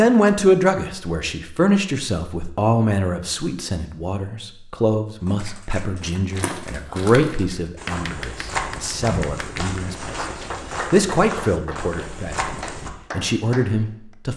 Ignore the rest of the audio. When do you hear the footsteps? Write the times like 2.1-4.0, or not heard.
6.3-12.9.